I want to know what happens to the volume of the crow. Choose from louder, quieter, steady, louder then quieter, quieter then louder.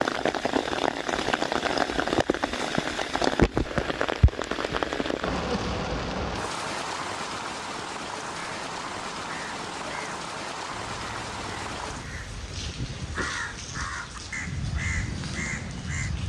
louder.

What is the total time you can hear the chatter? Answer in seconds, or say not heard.
not heard.